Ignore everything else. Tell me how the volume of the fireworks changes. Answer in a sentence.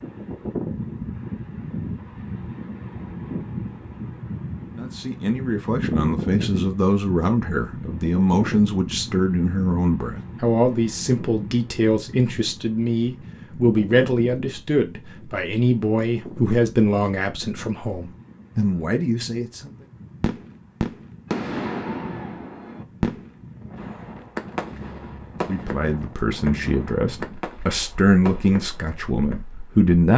The loudness of the fireworks goes down.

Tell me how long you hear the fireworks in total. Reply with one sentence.
You can hear the fireworks for 9 seconds altogether.